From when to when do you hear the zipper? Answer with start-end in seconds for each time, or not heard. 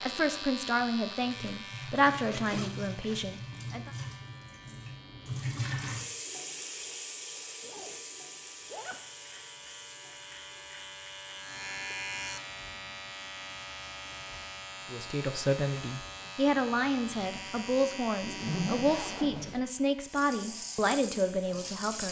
2.0-3.2, 7.6-8.0, 8.7-9.4, 18.2-19.6.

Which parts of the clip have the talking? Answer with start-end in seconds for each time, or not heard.
0.0-3.9, 14.9-22.0.